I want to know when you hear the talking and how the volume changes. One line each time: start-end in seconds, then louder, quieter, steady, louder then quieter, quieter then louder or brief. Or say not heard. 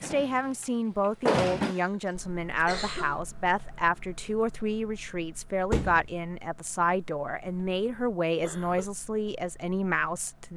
0.0-10.5 steady.